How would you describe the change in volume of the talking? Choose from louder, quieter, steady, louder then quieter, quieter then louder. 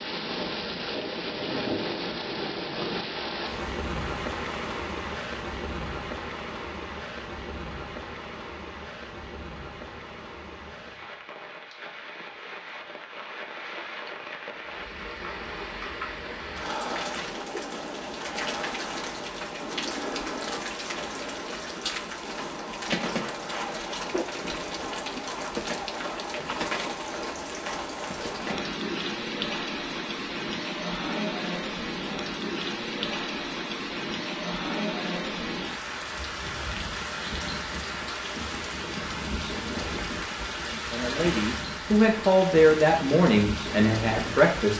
louder then quieter.